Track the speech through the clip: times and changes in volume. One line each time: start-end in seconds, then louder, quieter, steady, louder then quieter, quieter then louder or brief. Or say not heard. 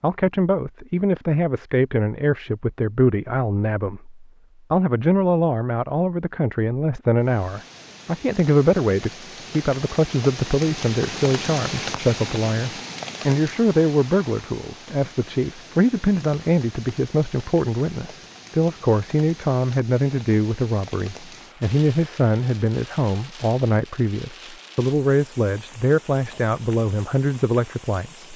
0.0-28.3 steady.